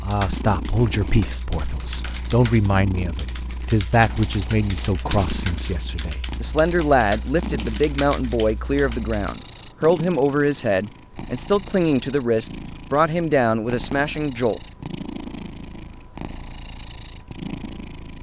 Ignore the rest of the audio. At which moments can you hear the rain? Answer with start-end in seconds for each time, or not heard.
not heard.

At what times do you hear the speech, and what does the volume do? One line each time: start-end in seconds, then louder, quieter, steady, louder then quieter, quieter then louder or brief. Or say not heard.
0.0-14.6 steady.